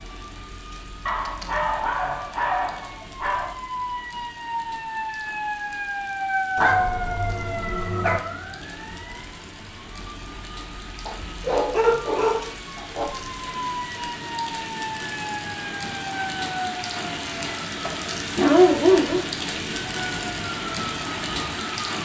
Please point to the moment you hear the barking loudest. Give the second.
19 s.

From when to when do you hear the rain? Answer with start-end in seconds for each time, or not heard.
0.0-22.0.